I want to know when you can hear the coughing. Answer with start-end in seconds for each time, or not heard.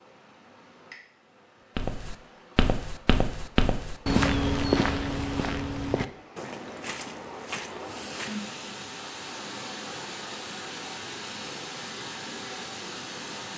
not heard.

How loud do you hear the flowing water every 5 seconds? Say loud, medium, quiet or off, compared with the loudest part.
quiet, loud, loud.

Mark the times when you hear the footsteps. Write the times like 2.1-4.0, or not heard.
1.8-8.4.